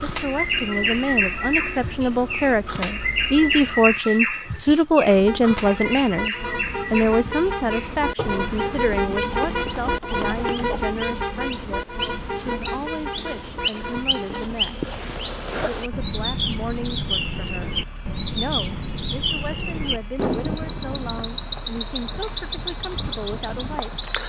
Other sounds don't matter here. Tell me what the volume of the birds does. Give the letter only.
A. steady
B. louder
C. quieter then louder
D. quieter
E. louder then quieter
C.